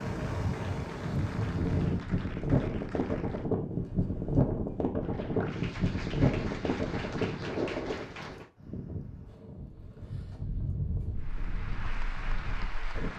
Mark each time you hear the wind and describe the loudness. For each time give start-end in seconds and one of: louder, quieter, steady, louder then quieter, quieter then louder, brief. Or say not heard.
0.0-13.1 quieter.